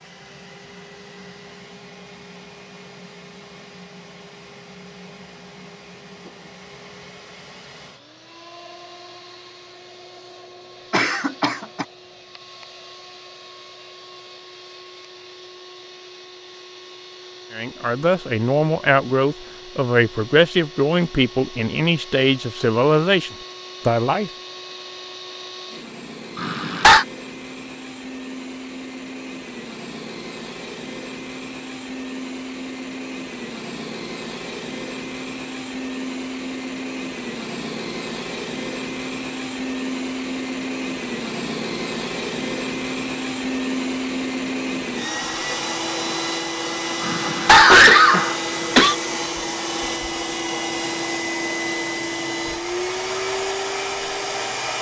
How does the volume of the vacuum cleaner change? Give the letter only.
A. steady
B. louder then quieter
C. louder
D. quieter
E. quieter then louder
C.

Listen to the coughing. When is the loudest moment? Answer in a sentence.
The volume of the coughing peaks at 48 seconds.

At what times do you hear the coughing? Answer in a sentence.
The coughing can be heard from 10.9 to 11.8 s, from 26.4 to 27.1 s and from 47.0 to 49.0 s.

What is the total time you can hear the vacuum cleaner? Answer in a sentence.
You can hear the vacuum cleaner for 55 seconds altogether.